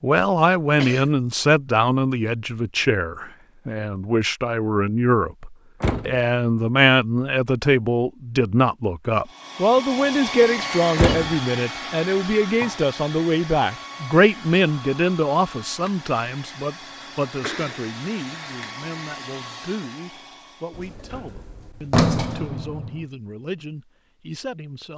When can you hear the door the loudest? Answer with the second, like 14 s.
22 s.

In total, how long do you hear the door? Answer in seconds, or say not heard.
3 s.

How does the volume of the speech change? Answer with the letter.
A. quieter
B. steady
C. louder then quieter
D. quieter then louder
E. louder
A.